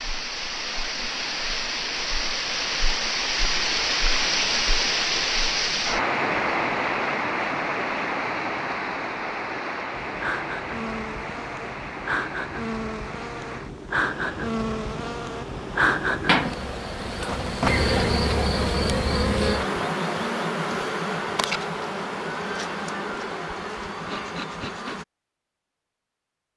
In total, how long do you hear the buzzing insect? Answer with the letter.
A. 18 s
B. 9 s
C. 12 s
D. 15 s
D.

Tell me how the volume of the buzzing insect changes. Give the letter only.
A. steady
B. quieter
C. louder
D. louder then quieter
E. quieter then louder
D.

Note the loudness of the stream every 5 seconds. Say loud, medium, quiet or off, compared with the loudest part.
loud, loud, medium, quiet, off, off.